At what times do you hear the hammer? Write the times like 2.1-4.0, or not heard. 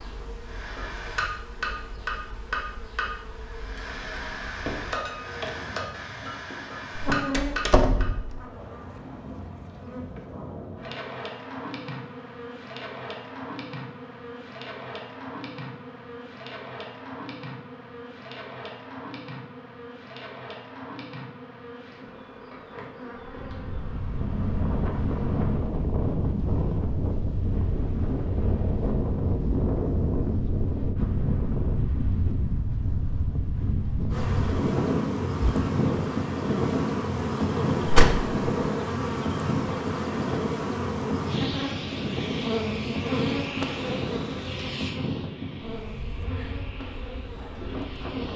0.5-8.1.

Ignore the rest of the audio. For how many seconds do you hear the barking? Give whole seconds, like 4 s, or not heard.
not heard.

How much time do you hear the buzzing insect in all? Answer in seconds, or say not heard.
40 s.